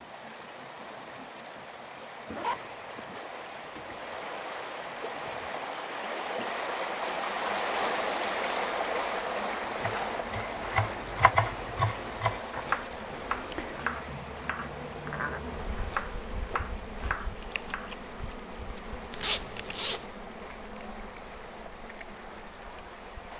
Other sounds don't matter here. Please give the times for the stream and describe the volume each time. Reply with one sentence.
The stream can be heard from 0.0 to 23.3 s, getting louder then quieter.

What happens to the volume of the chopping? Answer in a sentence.
The loudness of the chopping goes down.